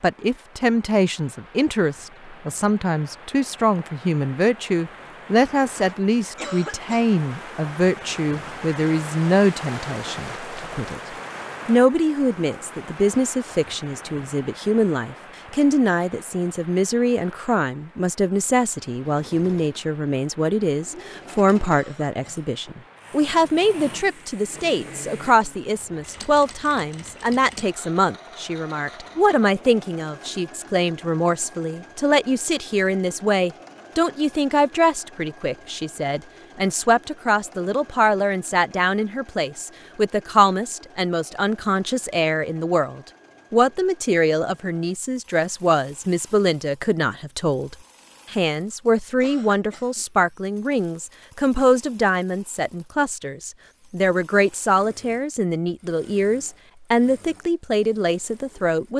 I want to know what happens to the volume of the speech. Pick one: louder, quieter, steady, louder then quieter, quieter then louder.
steady.